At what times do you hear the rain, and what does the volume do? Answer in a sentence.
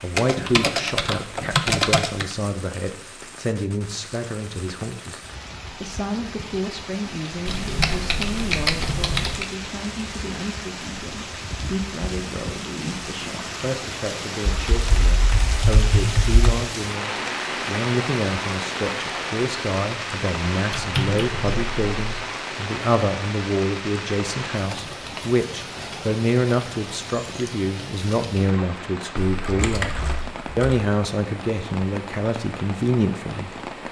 The rain can be heard from 0.0 to 33.8 s, getting louder then quieter.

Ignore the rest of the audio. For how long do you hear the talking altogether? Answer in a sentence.
The talking can be heard for 34 seconds in total.